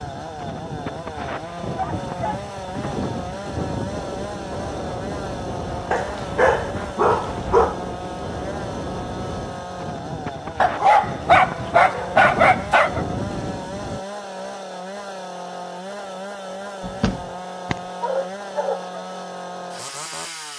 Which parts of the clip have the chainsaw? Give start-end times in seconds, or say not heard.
0.0-20.5.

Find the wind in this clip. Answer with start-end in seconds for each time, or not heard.
0.0-14.1.